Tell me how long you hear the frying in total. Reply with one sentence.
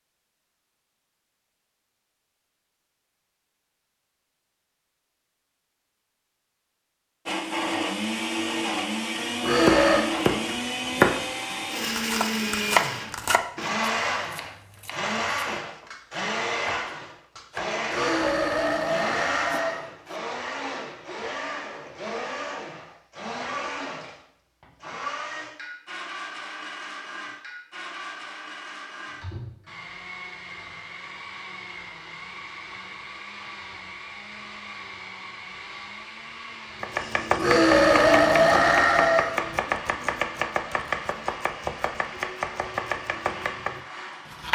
You can't hear the frying here.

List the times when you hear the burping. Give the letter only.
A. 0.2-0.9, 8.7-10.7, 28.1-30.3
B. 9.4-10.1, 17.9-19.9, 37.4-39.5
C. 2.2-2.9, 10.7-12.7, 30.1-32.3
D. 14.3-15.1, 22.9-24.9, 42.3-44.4
B.